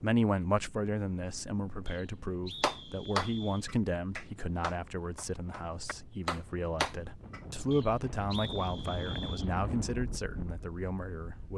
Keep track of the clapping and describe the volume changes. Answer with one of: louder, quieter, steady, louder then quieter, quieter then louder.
quieter then louder.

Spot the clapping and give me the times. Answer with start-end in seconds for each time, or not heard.
2.6-7.4.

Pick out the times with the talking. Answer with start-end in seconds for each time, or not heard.
0.0-11.5.